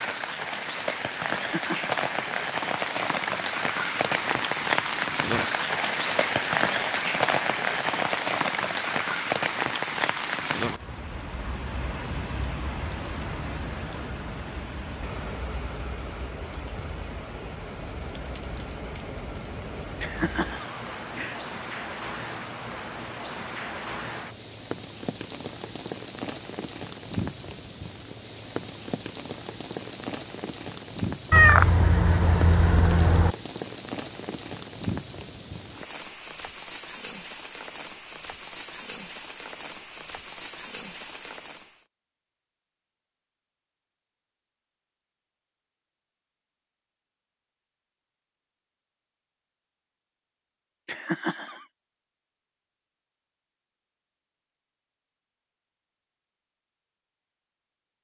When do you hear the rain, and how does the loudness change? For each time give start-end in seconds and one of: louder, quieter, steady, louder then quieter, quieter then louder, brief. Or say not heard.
0.0-41.9 quieter.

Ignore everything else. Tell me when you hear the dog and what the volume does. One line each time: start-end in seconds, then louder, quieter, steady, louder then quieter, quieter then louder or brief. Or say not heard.
not heard.